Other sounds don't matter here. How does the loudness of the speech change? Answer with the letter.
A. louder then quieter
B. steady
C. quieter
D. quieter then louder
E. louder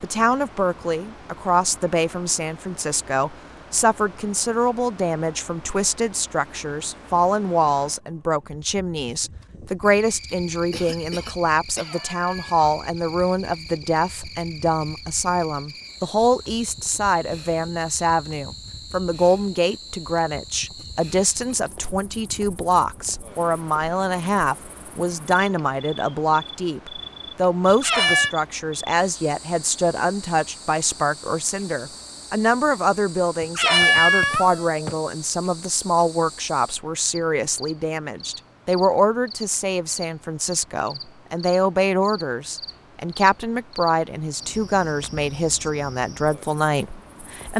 B.